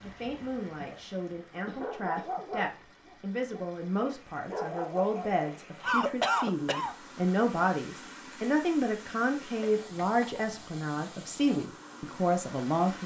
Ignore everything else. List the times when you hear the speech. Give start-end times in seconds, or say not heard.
0.0-13.0.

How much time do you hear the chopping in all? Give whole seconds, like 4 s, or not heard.
not heard.